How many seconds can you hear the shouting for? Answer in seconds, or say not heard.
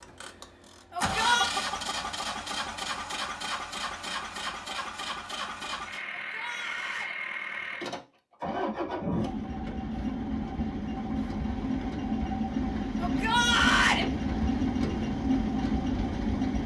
3 s.